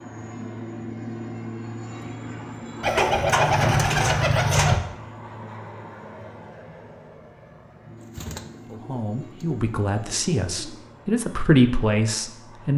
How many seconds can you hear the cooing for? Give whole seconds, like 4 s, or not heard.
5 s.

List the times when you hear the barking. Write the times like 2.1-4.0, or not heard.
not heard.